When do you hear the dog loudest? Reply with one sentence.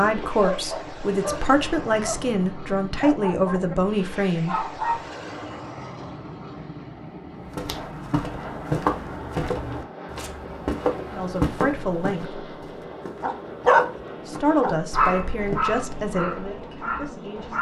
The loudest moment of the dog is at 14 seconds.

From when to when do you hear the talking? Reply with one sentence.
You can hear the talking from 0.0 to 4.7 s, from 11.1 to 12.4 s and from 14.2 to 17.5 s.